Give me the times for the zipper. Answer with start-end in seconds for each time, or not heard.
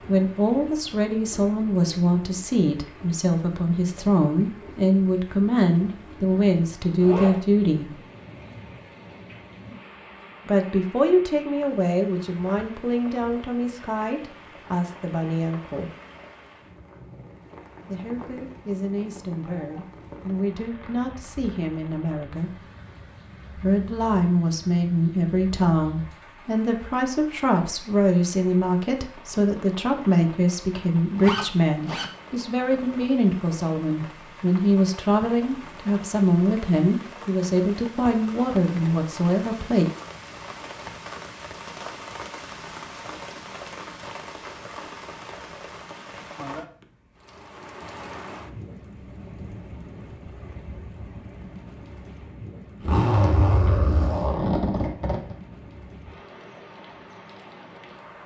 7.0-7.4, 31.1-32.1, 52.8-55.4.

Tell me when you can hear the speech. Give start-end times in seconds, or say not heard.
0.1-8.0, 10.4-15.9, 17.9-22.6, 23.6-39.9.